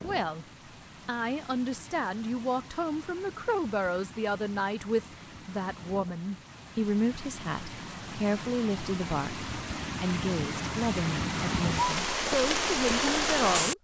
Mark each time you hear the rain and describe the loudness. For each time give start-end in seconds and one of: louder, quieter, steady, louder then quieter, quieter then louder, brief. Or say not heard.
0.0-13.7 louder.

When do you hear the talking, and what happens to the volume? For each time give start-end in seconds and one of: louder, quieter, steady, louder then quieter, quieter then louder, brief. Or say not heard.
0.0-0.5 brief
1.1-13.7 steady.